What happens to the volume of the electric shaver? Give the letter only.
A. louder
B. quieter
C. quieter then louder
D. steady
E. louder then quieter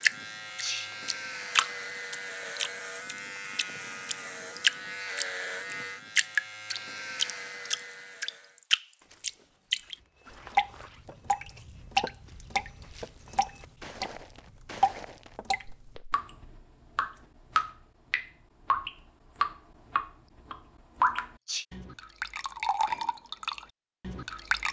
D.